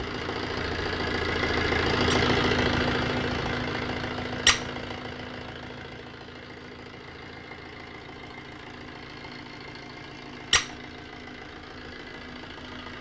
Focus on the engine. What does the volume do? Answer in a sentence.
The loudness of the engine goes down.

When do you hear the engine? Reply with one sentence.
You can hear the engine from 0.0 to 12.9 s.